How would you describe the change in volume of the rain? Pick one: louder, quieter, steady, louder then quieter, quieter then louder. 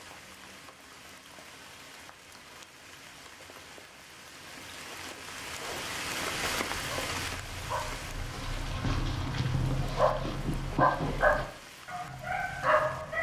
louder then quieter.